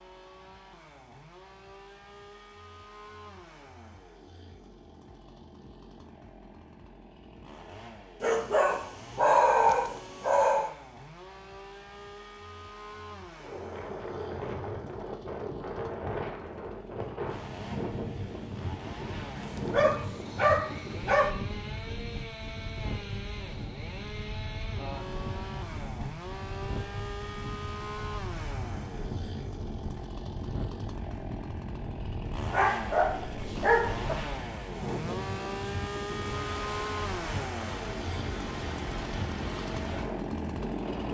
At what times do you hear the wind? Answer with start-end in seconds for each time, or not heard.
13.4-41.0.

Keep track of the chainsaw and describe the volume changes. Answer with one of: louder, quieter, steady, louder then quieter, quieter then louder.
louder.